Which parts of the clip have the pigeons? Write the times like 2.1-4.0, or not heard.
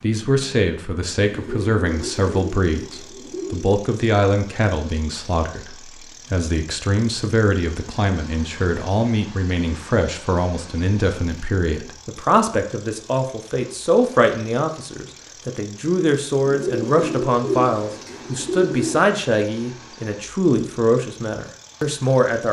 1.3-3.8, 16.4-19.0.